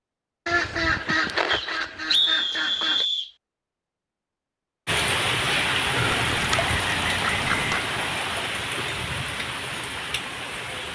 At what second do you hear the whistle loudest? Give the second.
2 s.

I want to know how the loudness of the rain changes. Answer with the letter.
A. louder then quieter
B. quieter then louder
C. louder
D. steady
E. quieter
E.